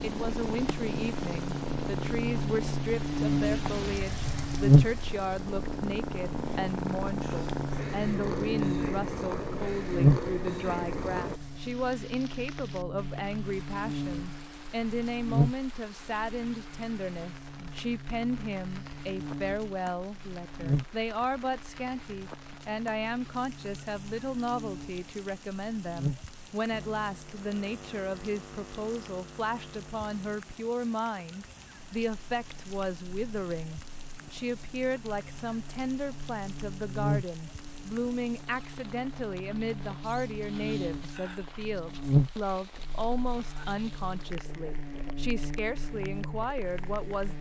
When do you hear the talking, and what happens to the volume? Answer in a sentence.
You can hear the talking from 0.0 to 47.3 s, at a steady volume.